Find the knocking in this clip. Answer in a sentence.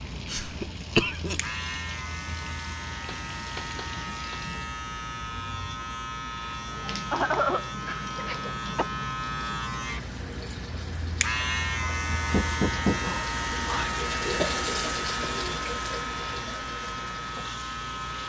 The knocking can be heard from 3.0 to 4.4 s, from 8.1 to 8.9 s and from 12.3 to 14.0 s.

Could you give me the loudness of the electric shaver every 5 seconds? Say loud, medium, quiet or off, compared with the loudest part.
medium, loud, loud, loud.